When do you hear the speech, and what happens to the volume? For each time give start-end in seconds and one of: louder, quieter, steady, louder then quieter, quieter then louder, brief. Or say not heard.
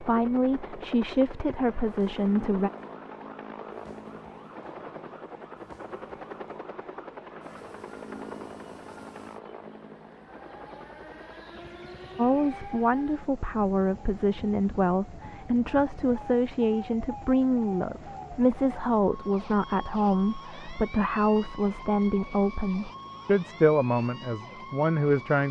0.0-2.7 brief
12.2-25.4 steady.